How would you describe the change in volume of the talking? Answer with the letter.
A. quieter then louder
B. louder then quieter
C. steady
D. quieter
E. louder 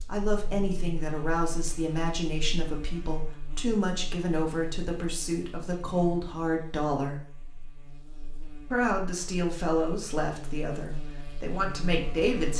C.